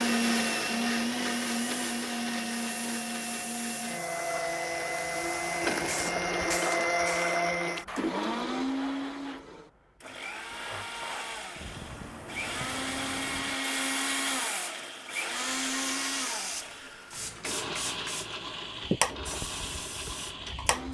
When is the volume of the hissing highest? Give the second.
19 s.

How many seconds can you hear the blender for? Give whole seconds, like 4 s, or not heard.
21 s.